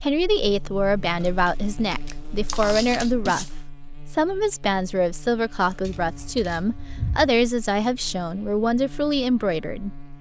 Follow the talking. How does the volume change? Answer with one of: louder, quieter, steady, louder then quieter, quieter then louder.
steady.